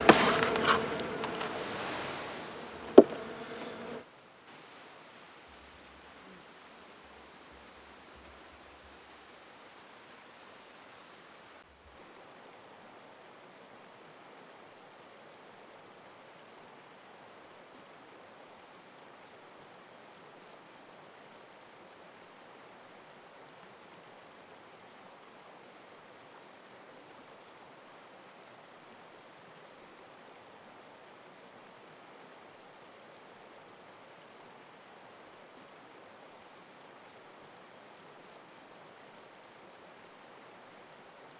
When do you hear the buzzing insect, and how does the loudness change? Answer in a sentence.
You can hear the buzzing insect from 0.0 to 4.0 s, getting quieter then louder.